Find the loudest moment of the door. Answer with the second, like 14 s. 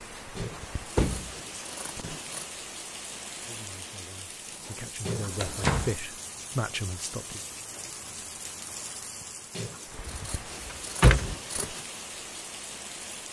11 s.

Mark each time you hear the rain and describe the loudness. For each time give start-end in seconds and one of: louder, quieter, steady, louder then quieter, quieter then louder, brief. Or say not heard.
0.0-13.2 steady.